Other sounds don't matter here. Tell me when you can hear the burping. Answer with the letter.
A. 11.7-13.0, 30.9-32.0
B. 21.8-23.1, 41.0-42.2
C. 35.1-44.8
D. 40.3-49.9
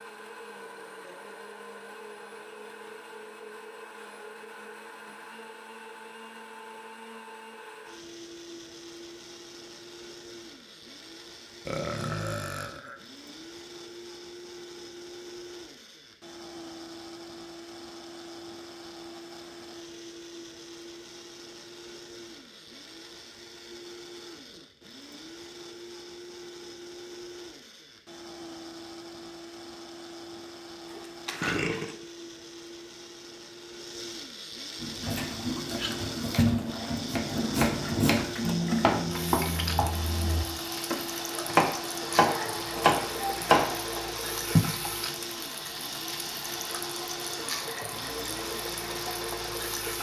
A.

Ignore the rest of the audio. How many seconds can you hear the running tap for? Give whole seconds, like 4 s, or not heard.
15 s.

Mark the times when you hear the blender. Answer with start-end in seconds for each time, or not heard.
0.0-49.9.